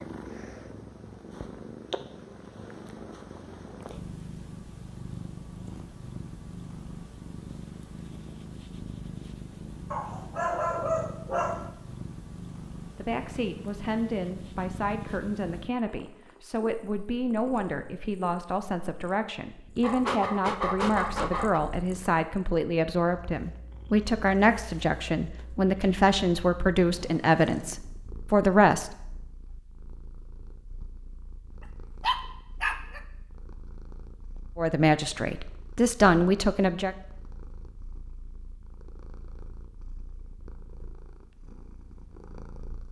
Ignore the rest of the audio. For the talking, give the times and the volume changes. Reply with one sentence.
You can hear the talking from 12.9 to 28.9 s, getting louder; and briefly from 34.5 to 37.0 s.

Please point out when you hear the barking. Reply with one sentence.
You can hear the barking from 9.9 to 11.7 s, from 19.8 to 21.6 s and from 32.0 to 33.0 s.